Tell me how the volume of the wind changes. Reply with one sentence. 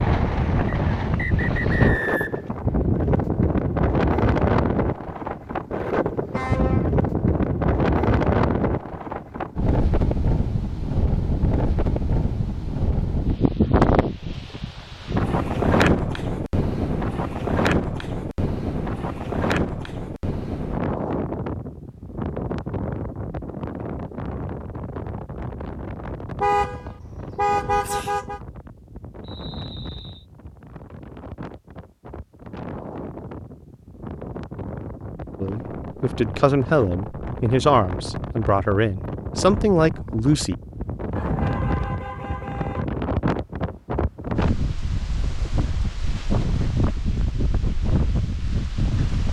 The volume of the wind goes down, then up.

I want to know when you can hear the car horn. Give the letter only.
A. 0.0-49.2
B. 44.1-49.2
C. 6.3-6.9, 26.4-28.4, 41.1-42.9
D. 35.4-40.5
C.